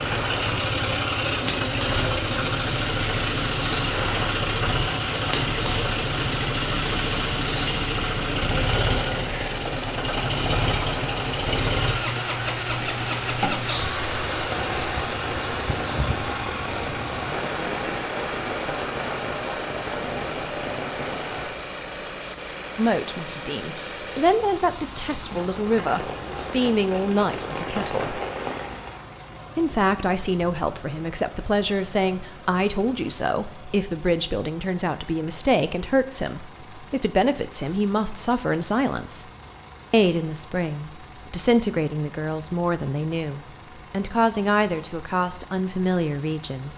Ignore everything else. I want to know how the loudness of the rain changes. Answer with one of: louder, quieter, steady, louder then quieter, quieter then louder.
steady.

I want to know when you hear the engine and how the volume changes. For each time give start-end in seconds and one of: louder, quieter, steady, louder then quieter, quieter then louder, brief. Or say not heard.
0.0-46.7 quieter.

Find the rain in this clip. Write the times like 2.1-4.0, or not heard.
0.0-29.1.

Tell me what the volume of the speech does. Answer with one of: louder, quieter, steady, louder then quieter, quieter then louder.
steady.